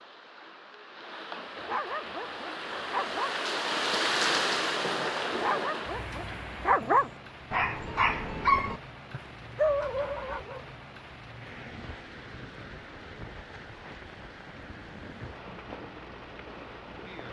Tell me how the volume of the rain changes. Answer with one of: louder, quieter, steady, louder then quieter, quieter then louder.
louder then quieter.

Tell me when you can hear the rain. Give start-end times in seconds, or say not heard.
0.0-17.2.